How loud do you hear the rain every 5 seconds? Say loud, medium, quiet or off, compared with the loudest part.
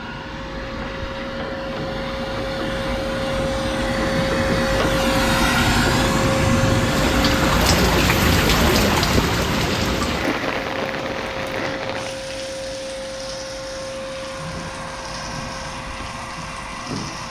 off, loud, medium, quiet.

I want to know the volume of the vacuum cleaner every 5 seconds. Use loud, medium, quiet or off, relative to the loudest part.
loud, loud, medium, medium.